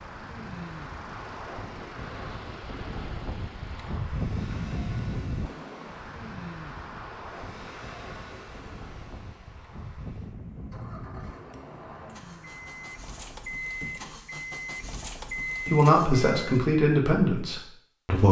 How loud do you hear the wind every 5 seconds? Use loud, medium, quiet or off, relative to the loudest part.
loud, loud, medium, off.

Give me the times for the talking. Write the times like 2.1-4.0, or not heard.
15.7-18.2.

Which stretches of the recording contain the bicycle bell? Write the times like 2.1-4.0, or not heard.
not heard.